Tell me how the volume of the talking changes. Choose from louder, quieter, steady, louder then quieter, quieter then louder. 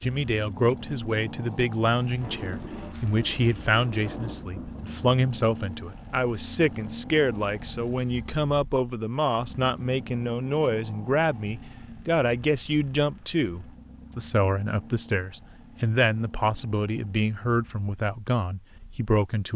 steady.